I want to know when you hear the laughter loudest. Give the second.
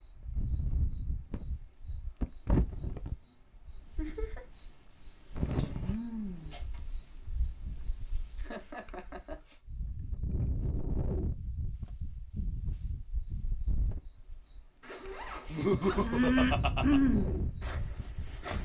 16 s.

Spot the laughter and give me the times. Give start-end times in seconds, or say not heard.
4.0-4.5, 8.3-9.6, 15.5-17.0.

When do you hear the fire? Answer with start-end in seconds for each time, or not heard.
not heard.